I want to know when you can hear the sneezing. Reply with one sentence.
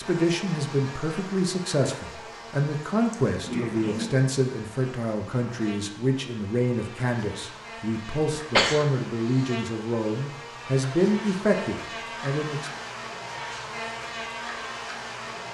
You can hear the sneezing from 3.1 to 4.1 s and from 8.6 to 9.5 s.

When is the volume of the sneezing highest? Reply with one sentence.
The loudest moment of the sneezing is at 9 seconds.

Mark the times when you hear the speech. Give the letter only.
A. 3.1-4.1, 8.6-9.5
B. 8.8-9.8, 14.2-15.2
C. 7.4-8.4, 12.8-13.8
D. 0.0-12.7
D.